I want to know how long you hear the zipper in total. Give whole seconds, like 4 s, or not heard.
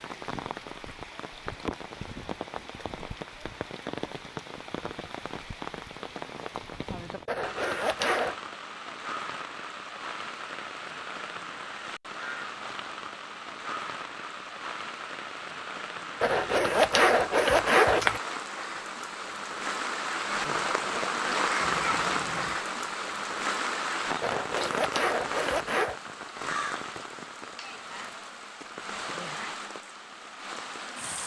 5 s.